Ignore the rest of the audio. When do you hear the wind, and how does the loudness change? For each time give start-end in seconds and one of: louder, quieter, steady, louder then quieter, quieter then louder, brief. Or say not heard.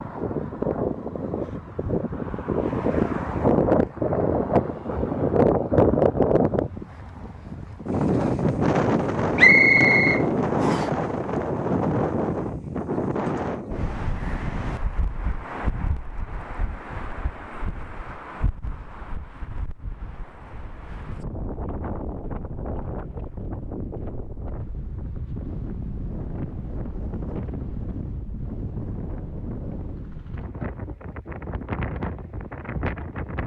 0.0-33.4 quieter.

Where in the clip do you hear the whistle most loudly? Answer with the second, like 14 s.
10 s.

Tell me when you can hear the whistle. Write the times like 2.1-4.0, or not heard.
9.3-10.9.